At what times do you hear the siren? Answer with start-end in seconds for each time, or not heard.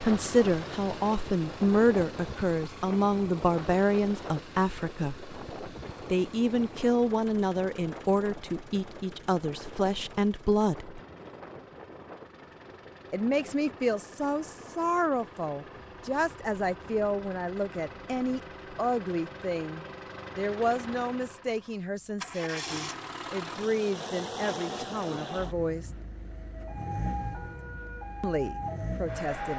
26.3-29.5.